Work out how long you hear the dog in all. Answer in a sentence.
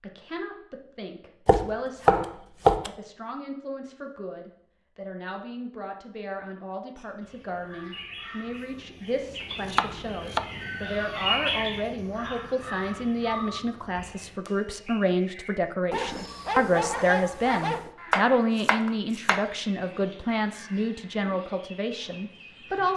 You can hear the dog for 2 seconds altogether.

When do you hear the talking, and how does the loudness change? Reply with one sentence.
The talking can be heard from 0.0 to 22.9 s, getting louder.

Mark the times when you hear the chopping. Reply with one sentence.
You can hear the chopping from 1.4 to 2.9 s, from 9.7 to 10.4 s and from 18.1 to 19.4 s.